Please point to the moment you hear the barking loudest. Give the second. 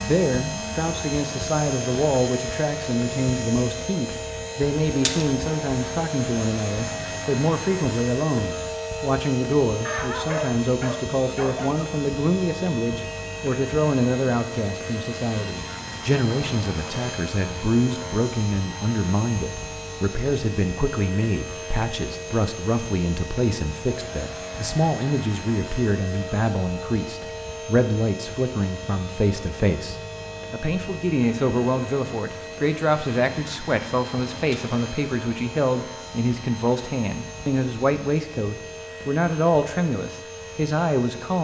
10 s.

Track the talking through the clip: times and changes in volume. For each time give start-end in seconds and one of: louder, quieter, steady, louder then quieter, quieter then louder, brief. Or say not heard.
0.0-41.4 steady.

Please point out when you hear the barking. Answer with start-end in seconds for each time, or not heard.
9.8-11.8.